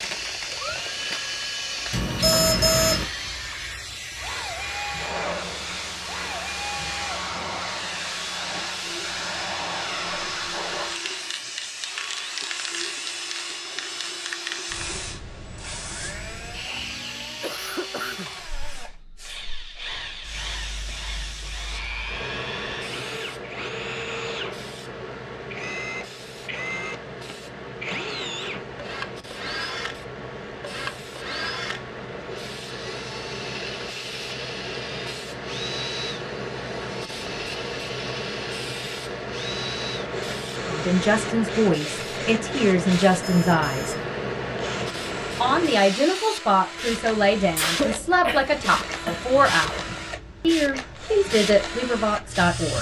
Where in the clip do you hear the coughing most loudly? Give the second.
48 s.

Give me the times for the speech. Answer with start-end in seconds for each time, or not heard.
40.6-44.0, 45.4-52.7.